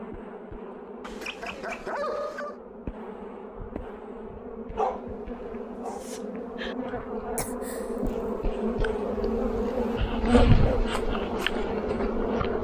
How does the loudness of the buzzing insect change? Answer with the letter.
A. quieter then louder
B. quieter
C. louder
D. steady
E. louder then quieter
C.